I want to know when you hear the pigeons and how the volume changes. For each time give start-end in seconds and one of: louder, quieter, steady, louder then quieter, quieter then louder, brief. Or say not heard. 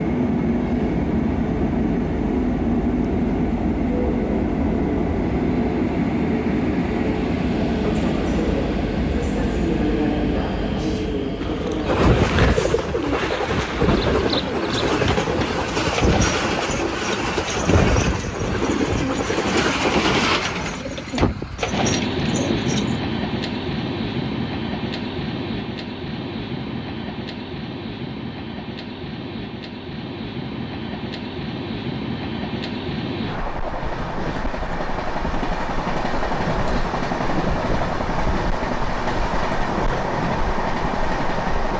11.3-23.0 steady.